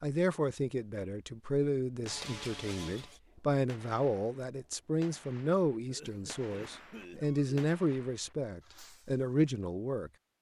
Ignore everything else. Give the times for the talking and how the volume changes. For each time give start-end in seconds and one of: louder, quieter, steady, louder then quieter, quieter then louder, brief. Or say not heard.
0.0-10.1 steady.